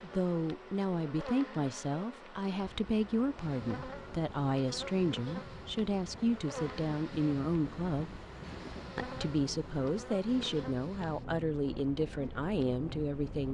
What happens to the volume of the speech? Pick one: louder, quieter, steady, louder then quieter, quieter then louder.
steady.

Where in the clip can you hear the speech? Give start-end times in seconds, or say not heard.
0.0-8.2, 8.9-13.4.